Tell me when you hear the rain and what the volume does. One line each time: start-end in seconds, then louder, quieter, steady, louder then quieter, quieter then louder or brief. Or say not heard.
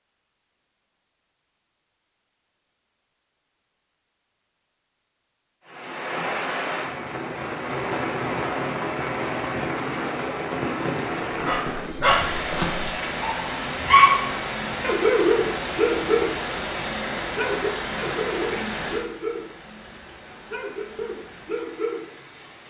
5.7-22.6 quieter.